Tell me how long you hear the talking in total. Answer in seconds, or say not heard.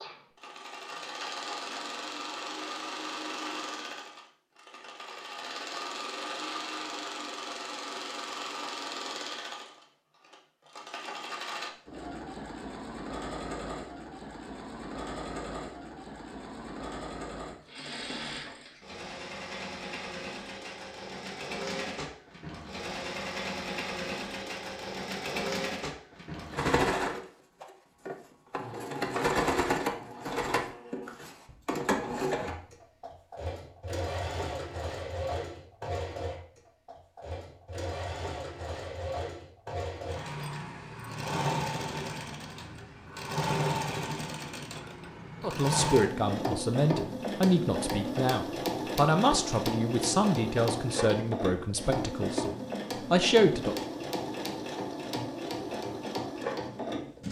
8 s.